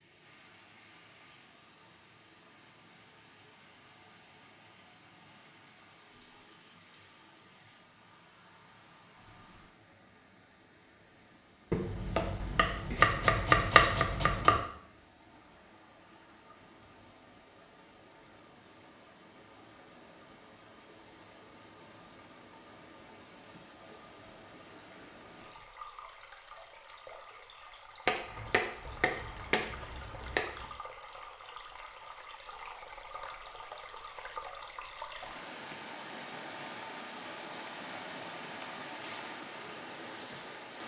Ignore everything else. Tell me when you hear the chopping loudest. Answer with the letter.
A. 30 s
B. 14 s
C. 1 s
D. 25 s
B.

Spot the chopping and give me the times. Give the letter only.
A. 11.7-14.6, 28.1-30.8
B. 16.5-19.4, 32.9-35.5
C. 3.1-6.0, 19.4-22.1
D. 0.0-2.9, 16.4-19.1
A.